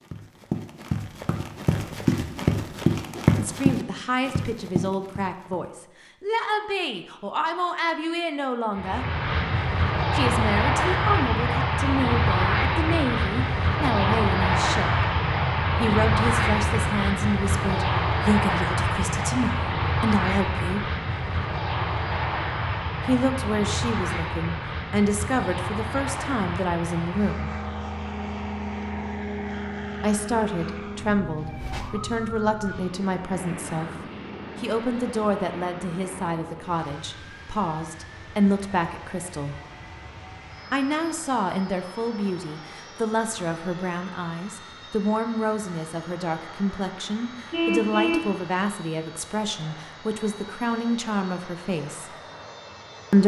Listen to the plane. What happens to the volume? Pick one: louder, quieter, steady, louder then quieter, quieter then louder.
quieter.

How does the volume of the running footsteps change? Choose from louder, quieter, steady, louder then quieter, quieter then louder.
louder then quieter.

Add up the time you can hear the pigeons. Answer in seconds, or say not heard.
not heard.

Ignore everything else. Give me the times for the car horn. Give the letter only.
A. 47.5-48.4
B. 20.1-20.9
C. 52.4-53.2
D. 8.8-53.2
A.